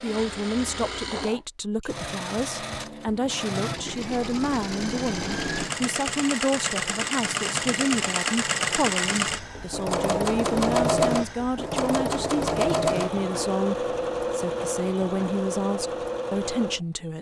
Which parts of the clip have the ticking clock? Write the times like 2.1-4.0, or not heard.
not heard.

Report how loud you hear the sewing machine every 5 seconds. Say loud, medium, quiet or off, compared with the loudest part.
medium, loud, loud, medium.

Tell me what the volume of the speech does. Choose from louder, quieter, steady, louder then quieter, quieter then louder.
steady.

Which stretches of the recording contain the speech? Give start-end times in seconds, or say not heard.
0.0-17.1.